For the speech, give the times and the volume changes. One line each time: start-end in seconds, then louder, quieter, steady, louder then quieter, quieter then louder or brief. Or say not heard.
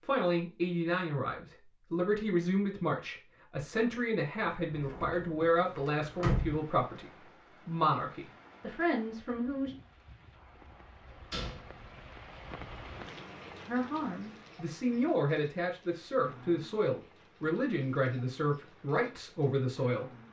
0.0-9.8 steady
13.7-20.2 steady.